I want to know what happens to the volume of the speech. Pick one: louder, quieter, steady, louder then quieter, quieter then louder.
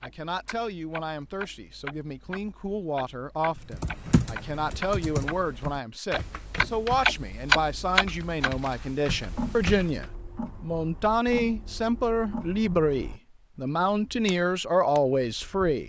louder.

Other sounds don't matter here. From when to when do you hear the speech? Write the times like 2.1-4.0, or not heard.
0.0-15.8.